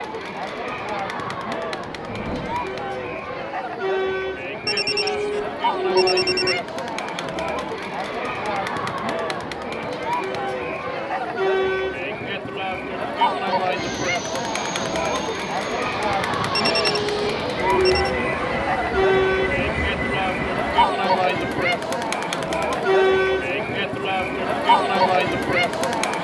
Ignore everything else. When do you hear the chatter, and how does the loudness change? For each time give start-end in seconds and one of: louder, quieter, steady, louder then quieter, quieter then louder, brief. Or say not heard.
0.0-26.1 louder.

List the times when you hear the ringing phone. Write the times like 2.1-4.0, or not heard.
4.7-6.6, 16.5-18.1.